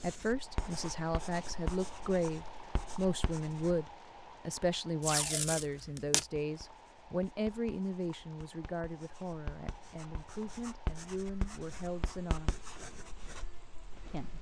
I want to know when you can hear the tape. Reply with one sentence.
The tape can be heard from 5.0 to 6.2 s.